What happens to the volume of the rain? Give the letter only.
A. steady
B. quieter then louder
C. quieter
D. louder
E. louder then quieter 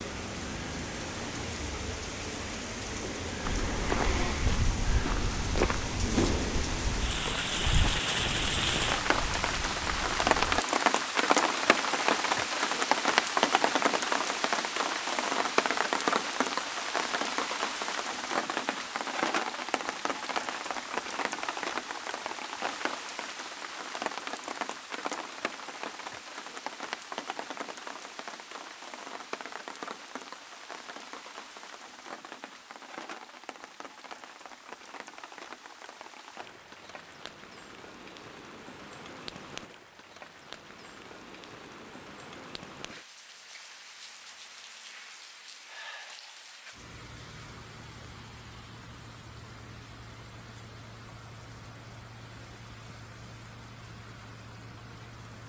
C.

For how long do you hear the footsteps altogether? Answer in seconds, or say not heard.
7 s.